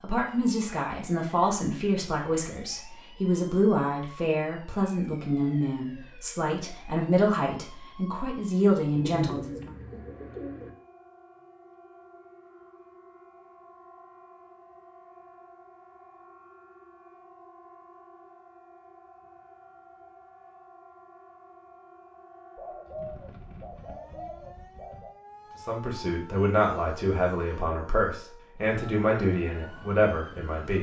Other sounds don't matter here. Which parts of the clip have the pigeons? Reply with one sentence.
You can hear the pigeons from 8.9 to 10.7 s and from 22.6 to 25.1 s.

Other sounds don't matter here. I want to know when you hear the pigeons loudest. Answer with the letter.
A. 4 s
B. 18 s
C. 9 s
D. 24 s
C.